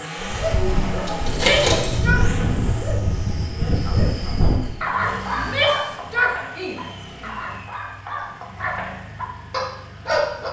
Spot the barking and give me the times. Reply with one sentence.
The barking can be heard from 0.1 to 10.4 s.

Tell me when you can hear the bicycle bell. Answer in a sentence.
You can't hear the bicycle bell here.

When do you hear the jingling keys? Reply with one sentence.
The jingling keys can be heard from 1.1 to 2.0 s.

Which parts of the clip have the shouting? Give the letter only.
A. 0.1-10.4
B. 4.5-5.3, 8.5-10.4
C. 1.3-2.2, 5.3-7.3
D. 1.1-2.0
C.